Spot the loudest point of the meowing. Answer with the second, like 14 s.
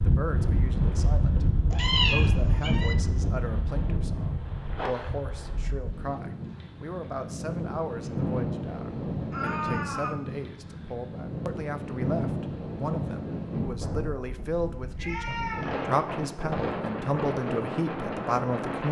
2 s.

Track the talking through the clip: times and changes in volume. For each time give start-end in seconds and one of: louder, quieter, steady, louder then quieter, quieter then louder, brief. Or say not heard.
0.0-18.8 louder.